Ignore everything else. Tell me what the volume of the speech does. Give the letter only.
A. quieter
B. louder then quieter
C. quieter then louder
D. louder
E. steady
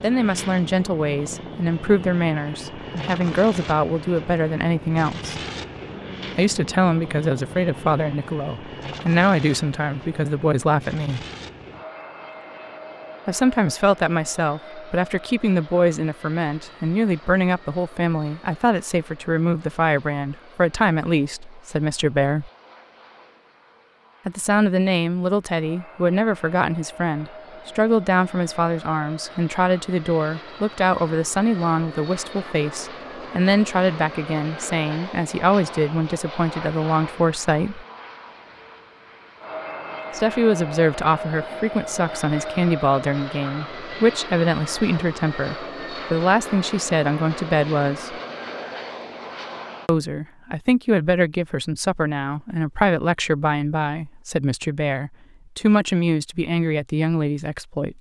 E.